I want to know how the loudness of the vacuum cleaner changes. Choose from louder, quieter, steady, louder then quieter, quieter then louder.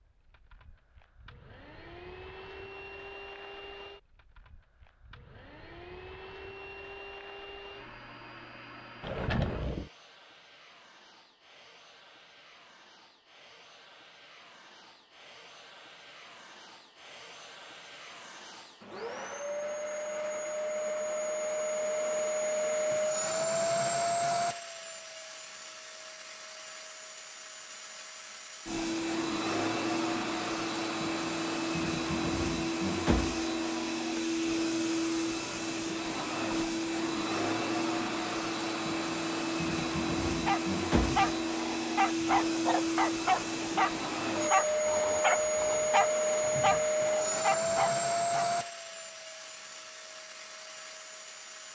louder.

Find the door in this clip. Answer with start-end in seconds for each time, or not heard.
9.0-9.9.